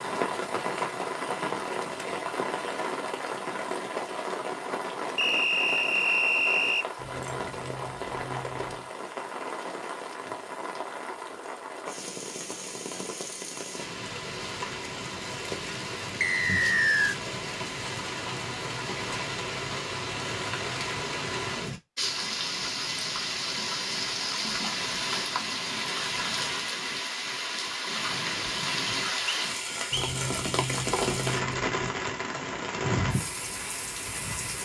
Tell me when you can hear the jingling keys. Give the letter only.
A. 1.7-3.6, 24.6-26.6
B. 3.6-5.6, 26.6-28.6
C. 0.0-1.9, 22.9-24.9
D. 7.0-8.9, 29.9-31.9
D.